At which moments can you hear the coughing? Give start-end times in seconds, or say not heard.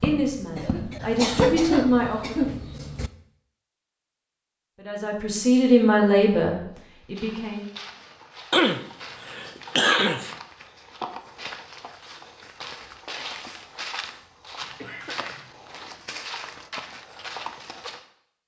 0.6-3.1, 8.5-10.3, 14.6-15.5.